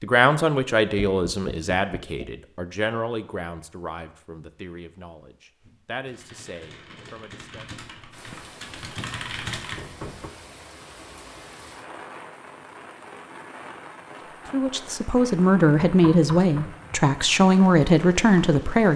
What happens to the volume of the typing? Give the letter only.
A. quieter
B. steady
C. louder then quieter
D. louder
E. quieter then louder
D.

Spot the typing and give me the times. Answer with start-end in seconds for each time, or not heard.
5.5-9.8.